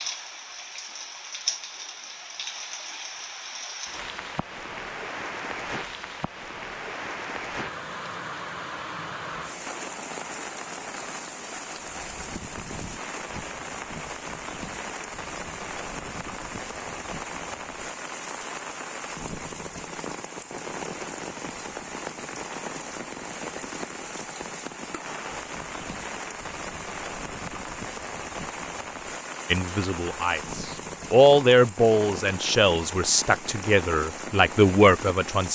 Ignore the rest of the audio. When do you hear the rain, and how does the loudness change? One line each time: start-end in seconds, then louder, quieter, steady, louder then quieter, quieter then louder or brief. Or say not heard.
0.0-35.4 steady.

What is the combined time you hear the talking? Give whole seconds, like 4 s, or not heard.
6 s.